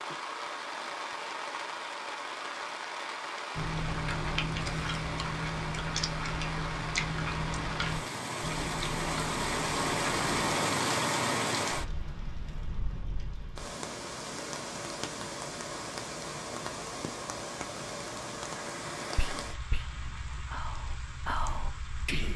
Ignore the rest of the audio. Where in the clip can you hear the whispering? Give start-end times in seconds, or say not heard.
19.1-22.3.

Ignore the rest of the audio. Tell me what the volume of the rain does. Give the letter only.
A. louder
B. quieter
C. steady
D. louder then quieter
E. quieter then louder
D.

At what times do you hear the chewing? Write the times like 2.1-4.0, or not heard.
3.5-10.6.